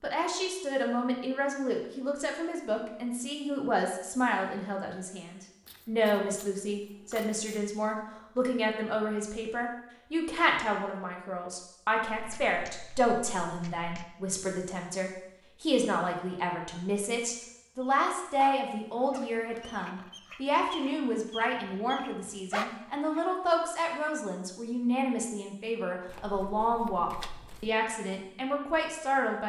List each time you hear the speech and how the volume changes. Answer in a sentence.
You can hear the speech from 0.0 to 29.4 s, at a steady volume.